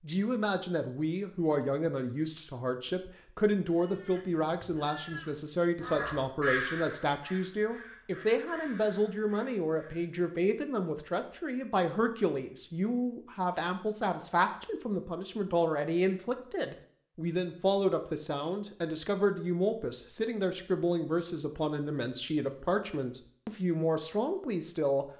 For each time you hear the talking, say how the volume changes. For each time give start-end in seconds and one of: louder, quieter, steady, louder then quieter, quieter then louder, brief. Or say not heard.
0.0-25.1 steady.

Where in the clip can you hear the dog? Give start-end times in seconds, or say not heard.
not heard.